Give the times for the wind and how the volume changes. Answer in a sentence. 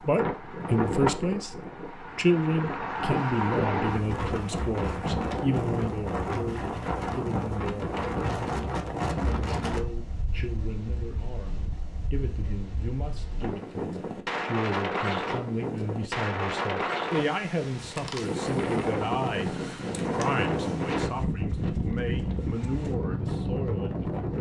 You can hear the wind from 0.0 to 24.3 s, getting quieter then louder.